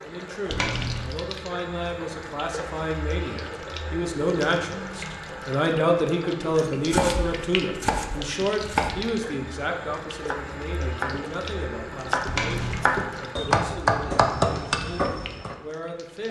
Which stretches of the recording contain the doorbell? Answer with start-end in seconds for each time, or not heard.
0.5-1.1, 12.2-12.8.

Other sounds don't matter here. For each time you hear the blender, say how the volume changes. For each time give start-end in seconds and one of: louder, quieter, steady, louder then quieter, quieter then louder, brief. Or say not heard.
not heard.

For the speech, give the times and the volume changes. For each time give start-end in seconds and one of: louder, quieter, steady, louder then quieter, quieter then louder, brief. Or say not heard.
0.0-15.0 louder then quieter
15.6-16.2 brief.